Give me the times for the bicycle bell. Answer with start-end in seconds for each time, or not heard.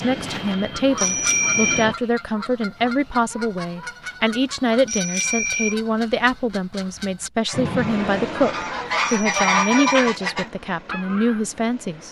0.9-1.9, 4.8-5.8, 9.1-10.0.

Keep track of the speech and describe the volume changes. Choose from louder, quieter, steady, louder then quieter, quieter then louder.
steady.